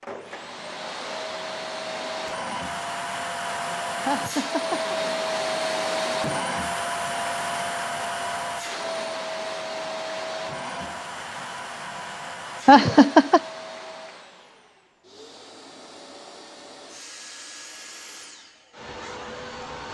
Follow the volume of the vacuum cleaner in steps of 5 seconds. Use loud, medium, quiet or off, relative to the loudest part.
loud, loud, medium, quiet.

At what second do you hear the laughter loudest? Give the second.
13 s.